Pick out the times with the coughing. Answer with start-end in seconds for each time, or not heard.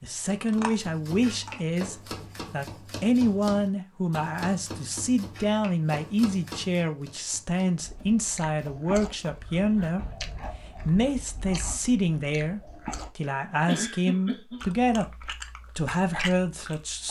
13.7-14.7.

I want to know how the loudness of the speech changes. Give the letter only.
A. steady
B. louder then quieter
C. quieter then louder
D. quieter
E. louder
A.